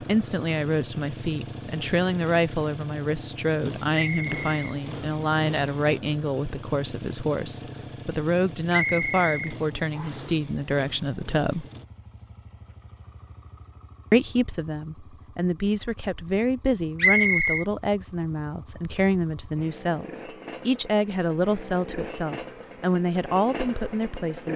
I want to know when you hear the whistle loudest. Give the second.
17 s.